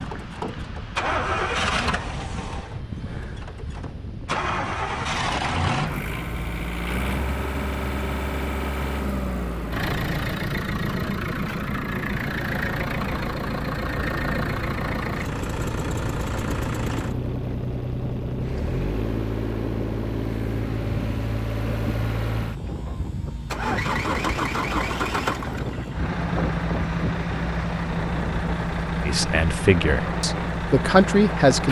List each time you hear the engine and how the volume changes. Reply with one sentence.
You can hear the engine from 0.0 to 31.6 s, at a steady volume.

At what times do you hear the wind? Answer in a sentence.
The wind can be heard from 0.0 to 31.6 s.